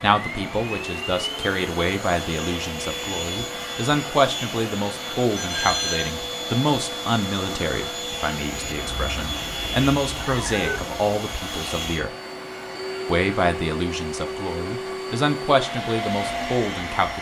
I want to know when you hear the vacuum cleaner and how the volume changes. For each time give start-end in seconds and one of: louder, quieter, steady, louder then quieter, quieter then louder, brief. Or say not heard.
0.0-17.1 steady.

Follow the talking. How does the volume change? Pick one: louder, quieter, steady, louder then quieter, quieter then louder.
steady.